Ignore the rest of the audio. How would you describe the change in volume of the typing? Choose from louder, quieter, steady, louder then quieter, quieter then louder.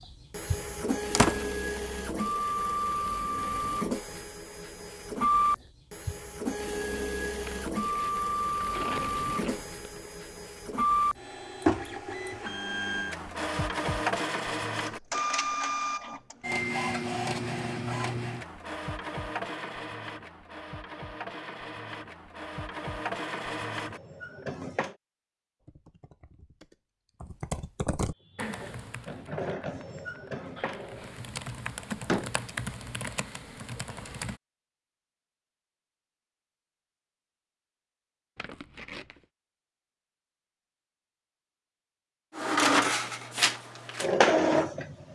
quieter then louder.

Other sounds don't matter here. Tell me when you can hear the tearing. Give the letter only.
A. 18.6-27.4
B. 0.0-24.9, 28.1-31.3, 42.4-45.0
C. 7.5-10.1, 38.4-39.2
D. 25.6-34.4
C.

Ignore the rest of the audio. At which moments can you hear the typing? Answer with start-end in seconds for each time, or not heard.
25.6-34.4.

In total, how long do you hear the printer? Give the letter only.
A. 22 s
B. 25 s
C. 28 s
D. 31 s
D.